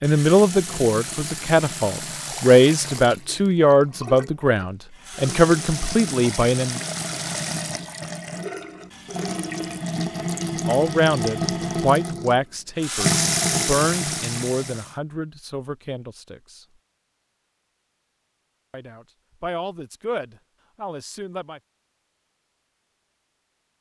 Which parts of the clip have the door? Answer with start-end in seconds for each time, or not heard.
not heard.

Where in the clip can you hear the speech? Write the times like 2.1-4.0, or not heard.
0.0-6.8, 10.7-16.6, 18.7-21.6.